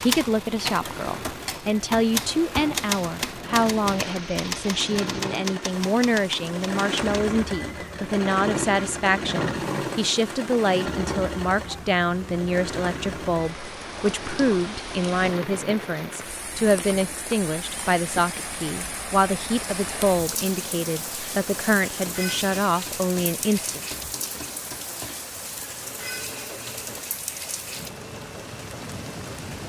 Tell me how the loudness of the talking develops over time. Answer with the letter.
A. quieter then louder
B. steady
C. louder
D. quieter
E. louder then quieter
B.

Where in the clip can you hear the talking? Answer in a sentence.
You can hear the talking from 0.0 to 23.8 s.